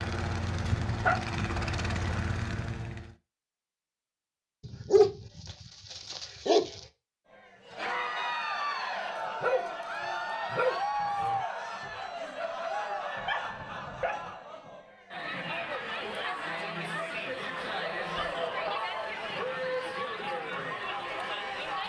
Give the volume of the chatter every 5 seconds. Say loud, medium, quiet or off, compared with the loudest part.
off, loud, loud, loud, loud.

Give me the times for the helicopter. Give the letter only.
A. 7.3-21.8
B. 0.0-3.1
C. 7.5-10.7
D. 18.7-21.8
B.